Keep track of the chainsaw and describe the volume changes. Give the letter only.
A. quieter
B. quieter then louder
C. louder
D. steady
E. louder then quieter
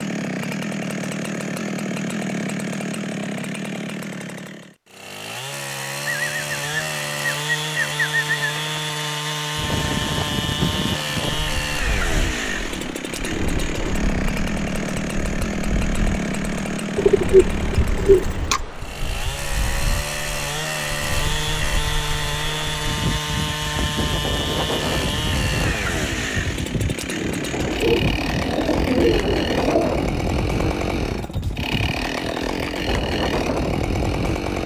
D.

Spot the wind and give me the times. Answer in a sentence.
You can hear the wind from 9.6 to 34.6 s.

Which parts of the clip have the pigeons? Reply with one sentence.
You can hear the pigeons from 6.0 to 8.9 s, from 16.9 to 18.6 s and from 27.5 to 30.0 s.